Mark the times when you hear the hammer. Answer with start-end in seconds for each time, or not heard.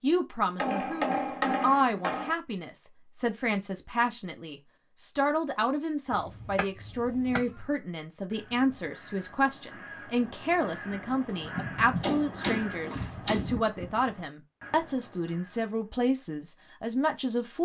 0.6-2.4, 6.1-7.7, 12.0-13.6.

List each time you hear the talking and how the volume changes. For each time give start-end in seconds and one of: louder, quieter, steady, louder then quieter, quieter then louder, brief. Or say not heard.
0.0-17.5 steady.